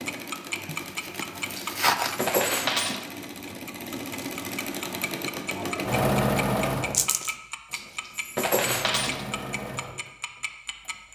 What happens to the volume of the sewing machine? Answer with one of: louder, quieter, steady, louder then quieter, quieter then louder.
louder then quieter.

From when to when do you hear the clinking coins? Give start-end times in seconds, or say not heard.
1.5-3.0, 7.7-9.2.